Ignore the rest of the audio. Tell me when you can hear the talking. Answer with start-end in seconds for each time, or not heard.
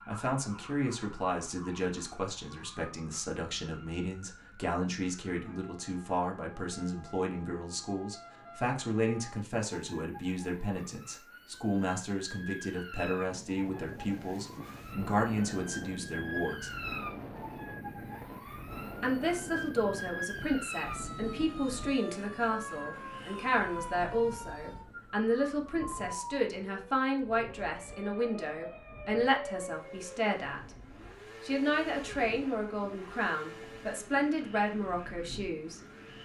0.1-16.8, 19.0-30.6, 31.4-35.8.